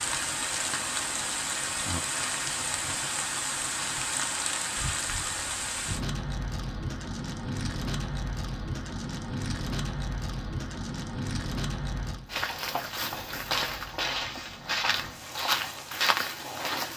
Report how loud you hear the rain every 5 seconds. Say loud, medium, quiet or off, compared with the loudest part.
loud, loud, medium, quiet.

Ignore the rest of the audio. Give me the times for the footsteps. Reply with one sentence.
You can hear the footsteps from 12.3 to 16.9 s.